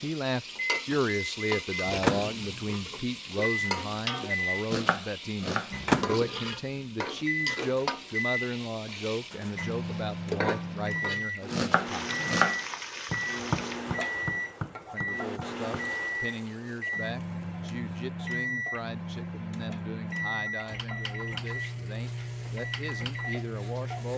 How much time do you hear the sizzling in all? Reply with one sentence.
The sizzling can be heard for 24 seconds in total.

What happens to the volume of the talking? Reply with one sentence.
The loudness of the talking goes down.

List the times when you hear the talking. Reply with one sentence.
You can hear the talking from 0.0 to 12.2 s and from 14.9 to 24.1 s.